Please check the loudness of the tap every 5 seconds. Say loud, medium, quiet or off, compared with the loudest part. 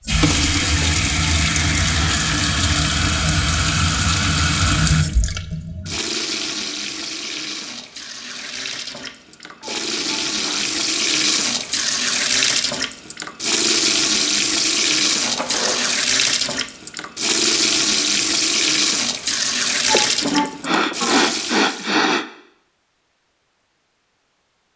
loud, medium, loud, loud, medium.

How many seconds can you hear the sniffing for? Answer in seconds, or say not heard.
5 s.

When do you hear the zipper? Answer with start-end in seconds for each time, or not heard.
15.1-15.9.